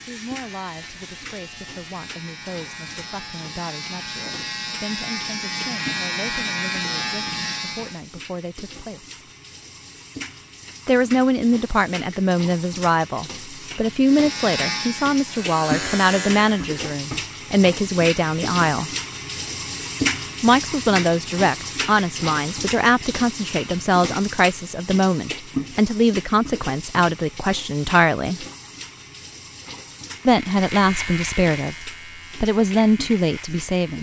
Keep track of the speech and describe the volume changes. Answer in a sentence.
The loudness of the speech goes up.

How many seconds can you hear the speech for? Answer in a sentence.
You can hear the speech for 29 seconds altogether.